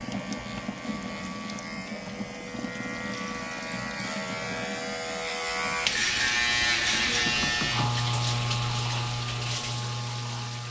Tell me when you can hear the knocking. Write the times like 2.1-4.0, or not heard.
7.2-8.0.